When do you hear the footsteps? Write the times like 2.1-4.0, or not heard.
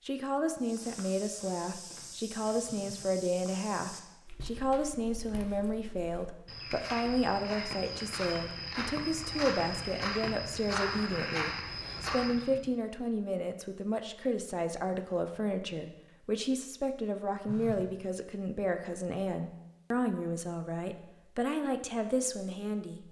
0.6-12.5.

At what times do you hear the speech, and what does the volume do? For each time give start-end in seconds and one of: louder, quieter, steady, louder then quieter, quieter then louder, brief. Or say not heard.
0.1-23.0 steady.